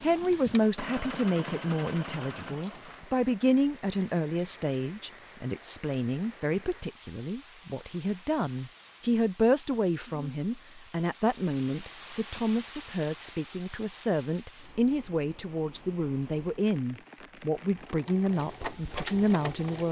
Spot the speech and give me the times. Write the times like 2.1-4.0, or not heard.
0.0-19.8.